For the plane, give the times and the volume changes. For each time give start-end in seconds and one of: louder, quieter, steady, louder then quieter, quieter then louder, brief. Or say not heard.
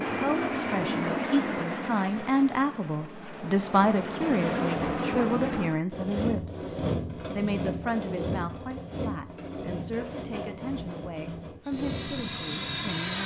0.0-5.8 quieter then louder
11.7-13.2 brief.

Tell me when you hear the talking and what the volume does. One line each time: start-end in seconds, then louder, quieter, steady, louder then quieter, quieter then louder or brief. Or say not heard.
0.0-13.2 quieter.